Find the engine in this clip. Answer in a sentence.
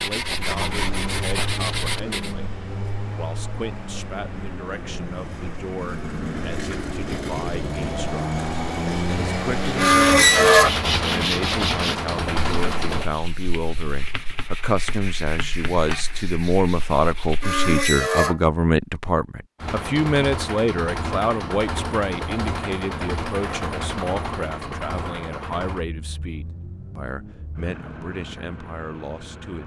You can hear the engine from 0.1 to 13.1 s and from 19.6 to 29.6 s.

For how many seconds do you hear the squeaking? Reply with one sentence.
The squeaking can be heard for 2 seconds in total.